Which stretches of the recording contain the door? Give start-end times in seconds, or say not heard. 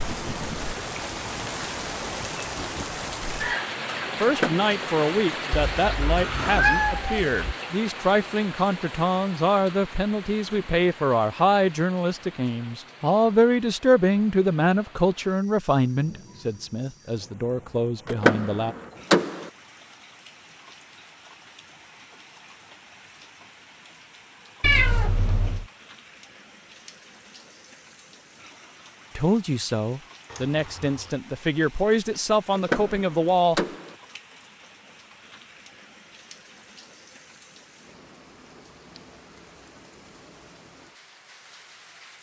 4.2-4.7, 18.1-19.5, 32.5-34.0.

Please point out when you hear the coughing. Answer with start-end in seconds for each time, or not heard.
not heard.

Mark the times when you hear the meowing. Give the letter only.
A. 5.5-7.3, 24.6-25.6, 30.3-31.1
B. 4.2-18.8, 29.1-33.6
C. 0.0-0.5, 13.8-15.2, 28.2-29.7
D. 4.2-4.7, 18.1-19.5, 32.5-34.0
A.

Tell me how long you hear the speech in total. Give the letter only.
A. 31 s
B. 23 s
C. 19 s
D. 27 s
C.